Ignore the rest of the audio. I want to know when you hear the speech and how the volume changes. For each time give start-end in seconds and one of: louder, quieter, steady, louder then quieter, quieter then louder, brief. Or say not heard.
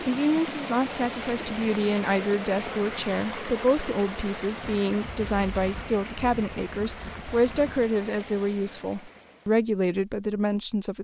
0.0-10.9 steady.